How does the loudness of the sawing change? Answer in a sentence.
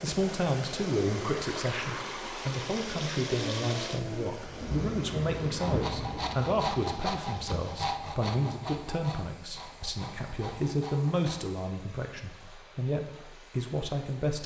The volume of the sawing goes down.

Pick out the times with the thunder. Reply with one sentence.
The thunder can be heard from 3.4 to 6.5 s.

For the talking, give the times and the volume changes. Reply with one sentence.
The talking can be heard from 0.0 to 14.4 s, at a steady volume.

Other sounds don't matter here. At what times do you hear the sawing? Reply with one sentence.
You can hear the sawing from 5.5 to 11.5 s.